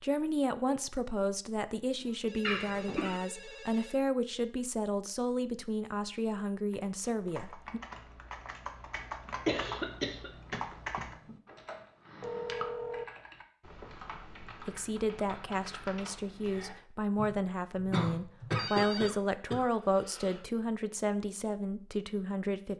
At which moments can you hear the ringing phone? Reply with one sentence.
You can hear the ringing phone from 2.0 to 4.0 s, from 12.2 to 13.1 s and from 18.5 to 19.1 s.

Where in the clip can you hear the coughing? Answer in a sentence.
The coughing can be heard from 2.4 to 3.2 s, from 9.4 to 11.3 s and from 17.9 to 20.4 s.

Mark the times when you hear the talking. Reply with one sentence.
The talking can be heard from 0.0 to 7.8 s and from 14.6 to 22.7 s.